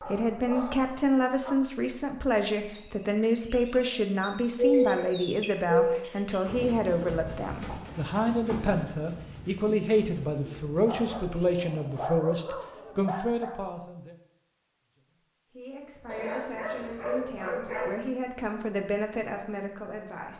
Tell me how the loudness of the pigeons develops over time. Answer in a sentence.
The volume of the pigeons goes down.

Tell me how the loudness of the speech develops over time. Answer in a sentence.
The loudness of the speech goes down.